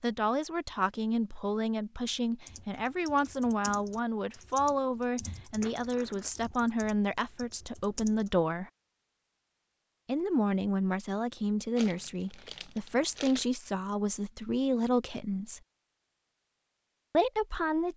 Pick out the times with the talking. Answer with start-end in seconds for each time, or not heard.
0.0-8.7, 10.1-15.6, 17.1-17.9.